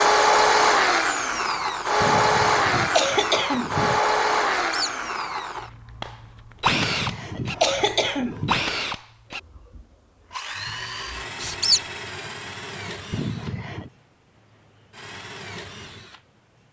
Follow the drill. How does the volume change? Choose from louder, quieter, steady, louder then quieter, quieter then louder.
quieter.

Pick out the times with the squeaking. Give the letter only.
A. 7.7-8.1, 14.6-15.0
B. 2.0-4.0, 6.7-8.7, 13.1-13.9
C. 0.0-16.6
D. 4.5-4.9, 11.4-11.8
D.